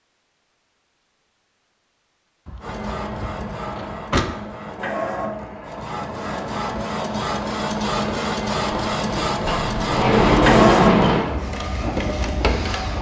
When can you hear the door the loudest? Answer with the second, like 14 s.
11 s.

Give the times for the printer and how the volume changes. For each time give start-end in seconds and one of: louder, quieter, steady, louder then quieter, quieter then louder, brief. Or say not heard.
2.6-12.9 louder.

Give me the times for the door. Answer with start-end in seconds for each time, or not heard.
2.5-4.2, 8.7-11.3.